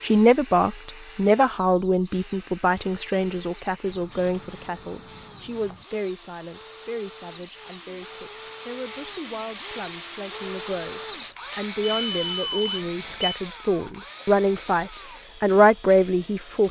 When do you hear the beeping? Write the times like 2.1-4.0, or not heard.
11.8-13.4.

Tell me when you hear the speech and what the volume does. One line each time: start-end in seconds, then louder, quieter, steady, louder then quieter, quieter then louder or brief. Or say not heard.
0.0-16.6 quieter then louder.